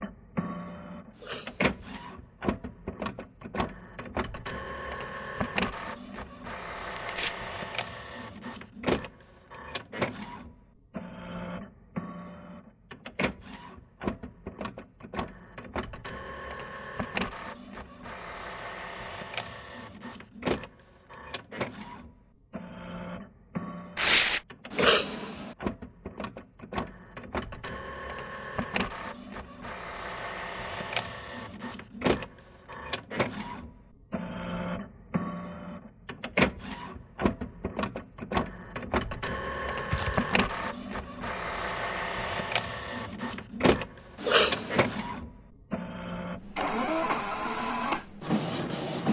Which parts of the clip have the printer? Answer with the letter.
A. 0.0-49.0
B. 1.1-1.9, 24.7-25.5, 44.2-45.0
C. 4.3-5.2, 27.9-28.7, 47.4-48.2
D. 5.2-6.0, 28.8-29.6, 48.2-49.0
A.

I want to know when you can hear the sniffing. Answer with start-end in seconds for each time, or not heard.
1.1-1.9, 24.7-25.5, 44.2-45.0.